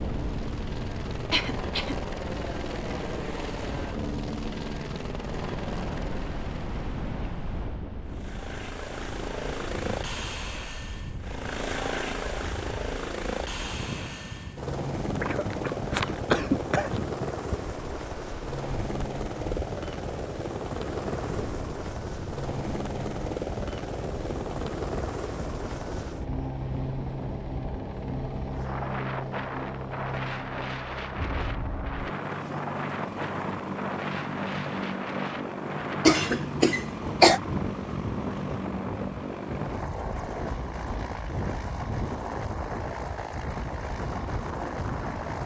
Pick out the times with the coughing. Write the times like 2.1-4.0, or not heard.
1.3-1.9, 15.2-17.0, 36.0-37.4.